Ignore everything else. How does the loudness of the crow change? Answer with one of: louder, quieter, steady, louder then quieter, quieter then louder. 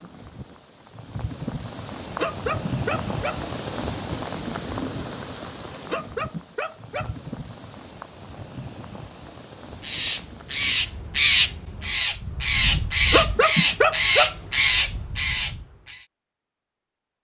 steady.